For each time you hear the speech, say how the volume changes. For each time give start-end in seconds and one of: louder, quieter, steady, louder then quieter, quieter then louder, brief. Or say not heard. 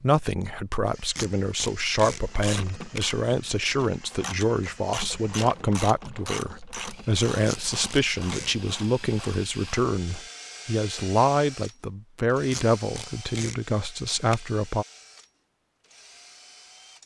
0.0-14.8 steady.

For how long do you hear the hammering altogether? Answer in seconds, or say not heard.
not heard.